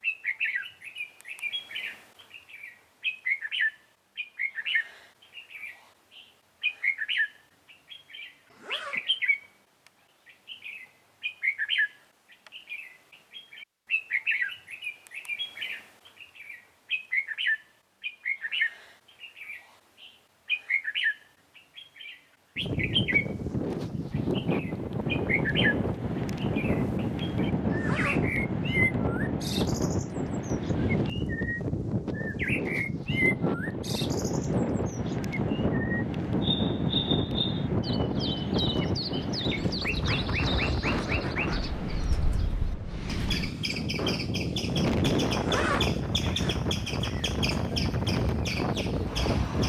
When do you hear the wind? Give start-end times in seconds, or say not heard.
22.6-49.6.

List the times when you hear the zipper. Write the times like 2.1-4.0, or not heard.
8.5-9.4, 27.7-28.4, 45.3-46.7.